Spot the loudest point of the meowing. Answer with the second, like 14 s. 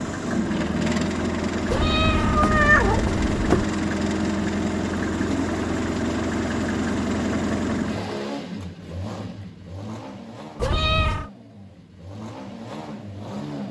3 s.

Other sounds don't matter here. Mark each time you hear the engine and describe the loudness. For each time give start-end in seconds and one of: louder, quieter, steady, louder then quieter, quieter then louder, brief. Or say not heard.
0.0-13.6 quieter.